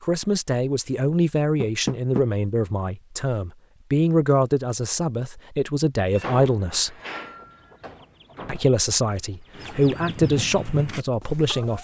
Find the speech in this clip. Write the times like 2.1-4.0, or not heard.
0.0-7.0, 8.4-11.7.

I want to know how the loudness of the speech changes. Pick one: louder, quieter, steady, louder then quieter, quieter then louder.
steady.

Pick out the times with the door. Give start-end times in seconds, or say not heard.
1.6-2.2, 6.0-8.7.